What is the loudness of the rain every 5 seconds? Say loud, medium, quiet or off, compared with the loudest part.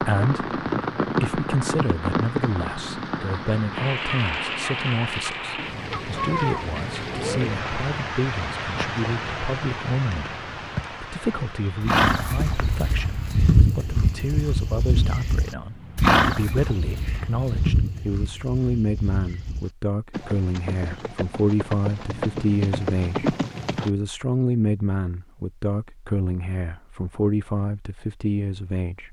loud, loud, medium, quiet, off, off.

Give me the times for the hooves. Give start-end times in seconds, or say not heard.
11.8-23.9.